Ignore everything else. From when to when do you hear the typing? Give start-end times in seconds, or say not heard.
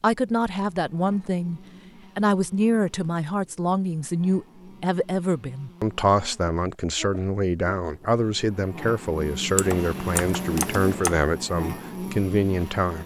9.6-11.2.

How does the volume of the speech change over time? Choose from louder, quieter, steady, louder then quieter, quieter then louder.
steady.